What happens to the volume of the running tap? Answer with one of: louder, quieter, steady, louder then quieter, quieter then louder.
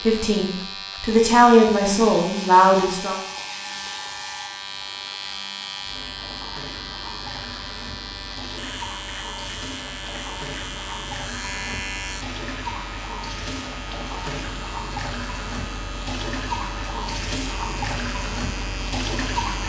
louder.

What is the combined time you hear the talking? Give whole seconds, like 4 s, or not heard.
3 s.